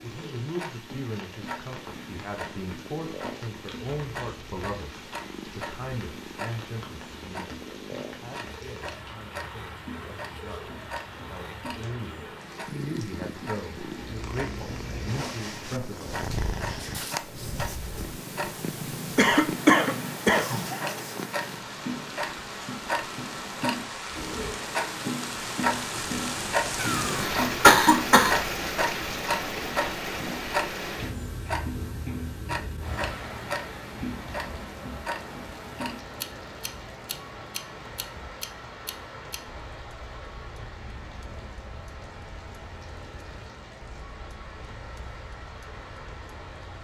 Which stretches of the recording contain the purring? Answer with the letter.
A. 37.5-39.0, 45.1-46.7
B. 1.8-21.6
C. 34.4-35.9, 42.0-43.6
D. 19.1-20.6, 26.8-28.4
B.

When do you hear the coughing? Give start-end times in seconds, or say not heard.
19.1-20.6, 26.8-28.4.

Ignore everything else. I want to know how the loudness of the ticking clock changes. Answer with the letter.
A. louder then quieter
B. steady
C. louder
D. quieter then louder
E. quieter
A.